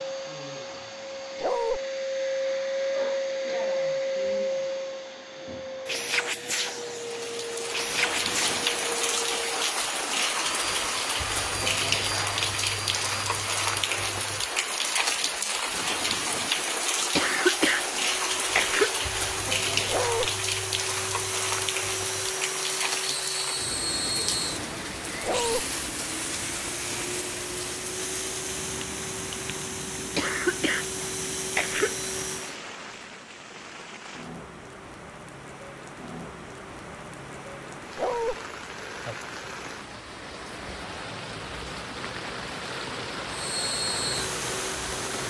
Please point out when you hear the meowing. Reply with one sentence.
You can't hear the meowing here.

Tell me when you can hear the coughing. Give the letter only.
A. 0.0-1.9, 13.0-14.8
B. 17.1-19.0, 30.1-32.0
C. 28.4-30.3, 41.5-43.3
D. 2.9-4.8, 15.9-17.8
B.